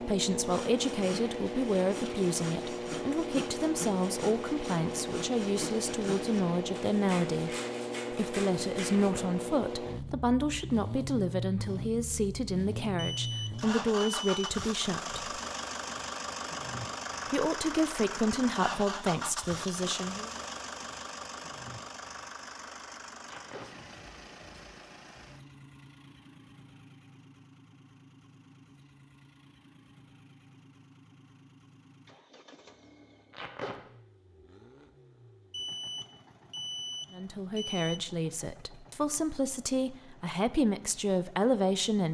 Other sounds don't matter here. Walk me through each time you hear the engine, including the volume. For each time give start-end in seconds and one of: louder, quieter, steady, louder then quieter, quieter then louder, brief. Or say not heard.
0.0-42.0 quieter.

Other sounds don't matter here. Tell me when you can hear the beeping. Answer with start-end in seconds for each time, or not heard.
12.9-14.4, 35.5-38.0.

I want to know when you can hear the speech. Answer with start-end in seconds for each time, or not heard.
0.0-15.2, 17.3-20.3, 37.1-42.0.